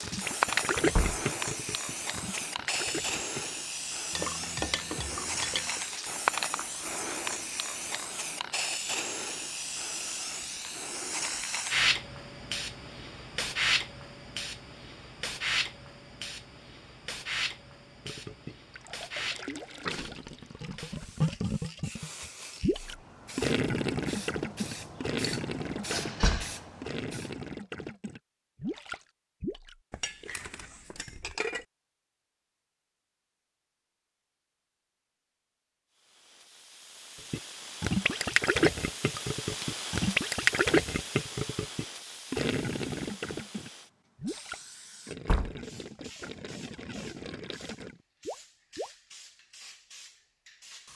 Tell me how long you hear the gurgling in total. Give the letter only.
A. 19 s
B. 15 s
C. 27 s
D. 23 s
C.